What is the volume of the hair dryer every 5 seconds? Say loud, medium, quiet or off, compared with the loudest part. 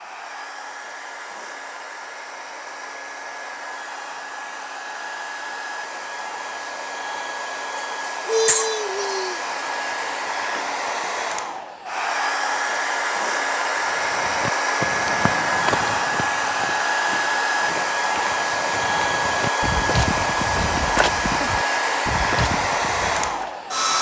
quiet, medium, loud, loud, loud.